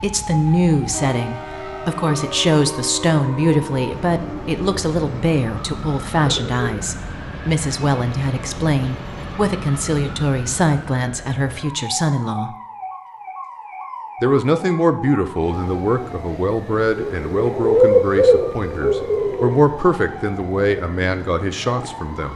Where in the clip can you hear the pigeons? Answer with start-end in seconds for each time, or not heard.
6.2-6.8, 17.0-19.6.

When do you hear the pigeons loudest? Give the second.
18 s.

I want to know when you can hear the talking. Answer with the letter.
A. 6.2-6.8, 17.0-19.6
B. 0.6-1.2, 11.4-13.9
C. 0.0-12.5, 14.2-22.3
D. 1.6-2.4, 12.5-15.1
C.